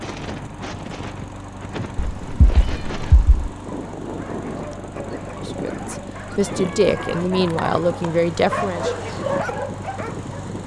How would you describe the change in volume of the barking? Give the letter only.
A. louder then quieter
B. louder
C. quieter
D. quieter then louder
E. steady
B.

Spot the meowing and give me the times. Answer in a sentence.
You can hear the meowing from 1.9 to 3.5 s and from 6.4 to 7.7 s.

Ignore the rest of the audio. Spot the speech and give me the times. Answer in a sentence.
The speech can be heard from 5.3 to 9.0 s.